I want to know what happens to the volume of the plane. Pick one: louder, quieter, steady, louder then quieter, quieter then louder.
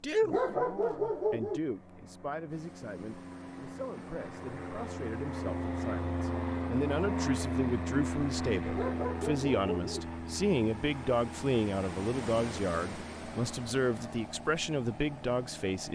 louder then quieter.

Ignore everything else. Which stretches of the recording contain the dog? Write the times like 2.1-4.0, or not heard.
0.2-1.6, 8.7-10.1.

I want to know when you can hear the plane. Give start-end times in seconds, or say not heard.
0.0-15.9.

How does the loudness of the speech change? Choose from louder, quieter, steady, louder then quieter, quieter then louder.
louder.